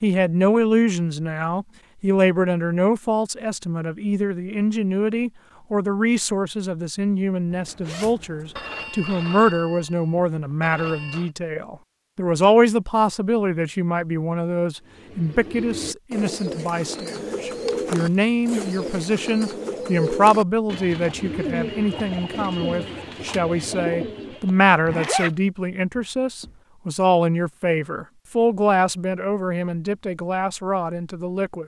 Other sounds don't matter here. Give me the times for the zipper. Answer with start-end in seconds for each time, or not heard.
7.5-8.7, 17.1-19.1, 24.9-25.4.